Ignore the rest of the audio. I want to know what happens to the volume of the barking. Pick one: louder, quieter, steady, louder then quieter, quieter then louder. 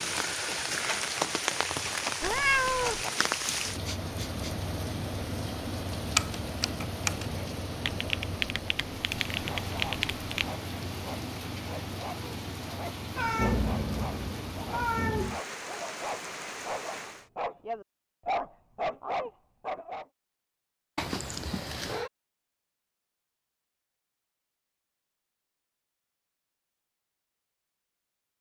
louder.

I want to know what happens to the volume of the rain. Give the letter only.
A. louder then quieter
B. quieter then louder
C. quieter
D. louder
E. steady
C.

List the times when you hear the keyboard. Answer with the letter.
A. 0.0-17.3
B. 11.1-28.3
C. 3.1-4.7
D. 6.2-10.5
D.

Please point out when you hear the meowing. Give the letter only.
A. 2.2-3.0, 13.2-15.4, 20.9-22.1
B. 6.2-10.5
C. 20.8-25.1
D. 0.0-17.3
A.